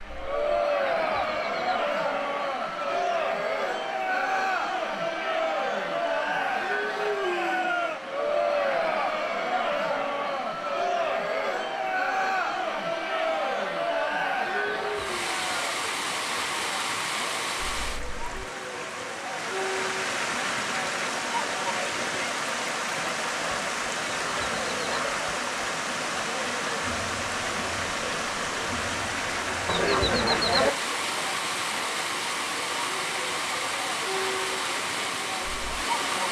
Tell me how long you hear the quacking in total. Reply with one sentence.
You can hear the quacking for 4 seconds altogether.